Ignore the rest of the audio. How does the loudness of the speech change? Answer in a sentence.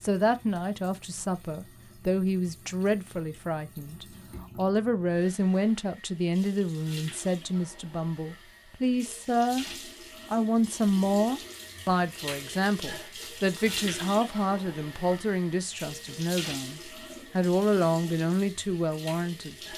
The volume of the speech stays about the same.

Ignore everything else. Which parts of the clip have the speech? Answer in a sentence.
You can hear the speech from 0.0 to 9.7 s and from 10.3 to 19.7 s.